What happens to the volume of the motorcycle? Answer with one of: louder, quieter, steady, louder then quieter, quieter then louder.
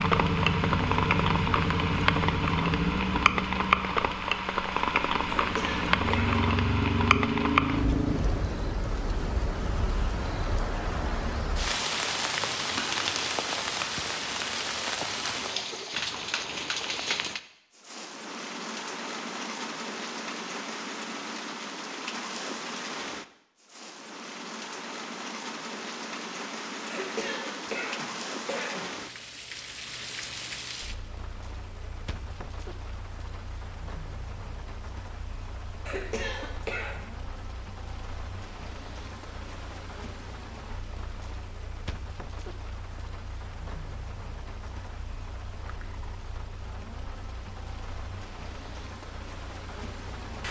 quieter then louder.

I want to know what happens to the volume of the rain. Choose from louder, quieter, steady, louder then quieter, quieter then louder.
quieter.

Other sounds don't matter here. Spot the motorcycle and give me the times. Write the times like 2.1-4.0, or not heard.
0.0-8.2.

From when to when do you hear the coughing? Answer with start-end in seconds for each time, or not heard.
5.2-6.5, 26.9-28.9, 35.9-37.0.